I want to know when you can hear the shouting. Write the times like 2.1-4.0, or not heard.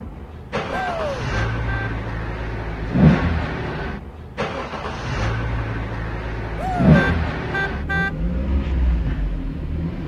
0.7-1.2, 6.5-7.2.